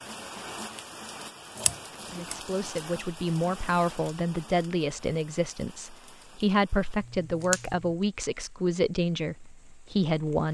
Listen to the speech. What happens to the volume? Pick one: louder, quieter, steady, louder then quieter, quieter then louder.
steady.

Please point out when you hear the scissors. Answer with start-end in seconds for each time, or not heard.
1.6-2.4, 7.0-7.9.